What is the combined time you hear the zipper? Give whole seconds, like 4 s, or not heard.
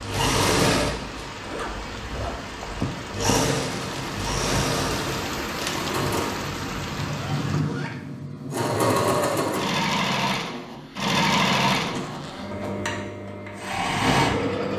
4 s.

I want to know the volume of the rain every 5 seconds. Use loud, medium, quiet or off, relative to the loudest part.
loud, loud, off.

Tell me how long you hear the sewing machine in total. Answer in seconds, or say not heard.
15 s.